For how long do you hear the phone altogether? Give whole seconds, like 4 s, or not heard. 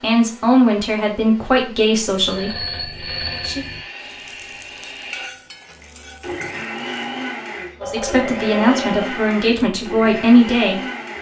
3 s.